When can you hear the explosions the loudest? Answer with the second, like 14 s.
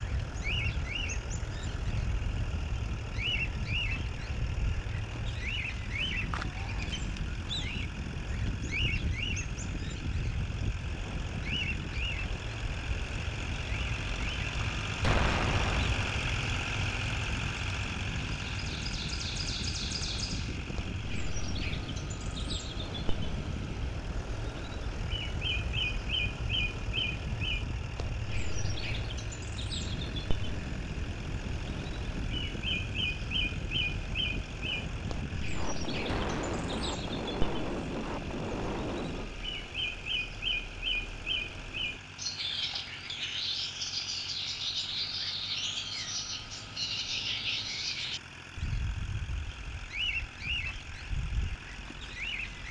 15 s.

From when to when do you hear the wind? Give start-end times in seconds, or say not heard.
0.0-39.4.